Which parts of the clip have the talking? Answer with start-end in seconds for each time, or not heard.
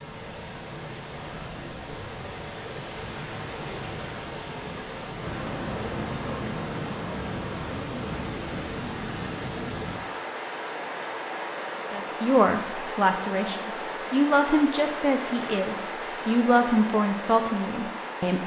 11.9-18.4.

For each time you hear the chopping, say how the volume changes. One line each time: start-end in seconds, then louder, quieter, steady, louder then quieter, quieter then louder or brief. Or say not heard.
not heard.